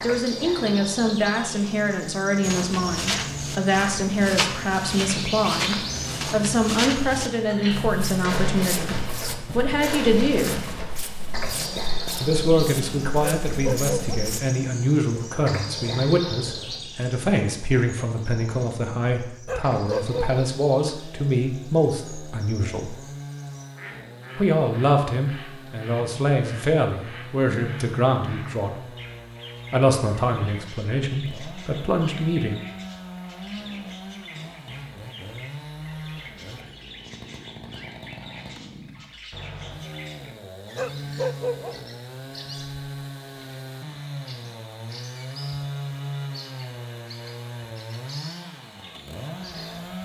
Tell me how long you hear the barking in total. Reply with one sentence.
The barking can be heard for 3 seconds in total.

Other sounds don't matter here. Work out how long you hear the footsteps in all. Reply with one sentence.
You can hear the footsteps for 12 seconds altogether.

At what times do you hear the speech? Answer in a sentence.
The speech can be heard from 0.0 to 10.6 s, from 12.2 to 23.0 s, from 24.4 to 28.9 s and from 29.7 to 32.5 s.